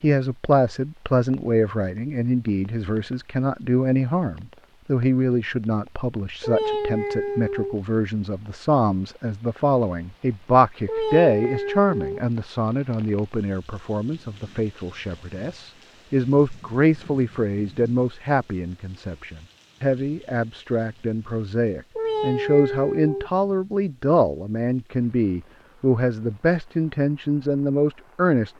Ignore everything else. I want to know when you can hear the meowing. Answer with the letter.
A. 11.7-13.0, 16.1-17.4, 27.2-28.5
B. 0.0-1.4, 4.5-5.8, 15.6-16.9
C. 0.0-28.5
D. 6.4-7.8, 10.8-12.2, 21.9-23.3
D.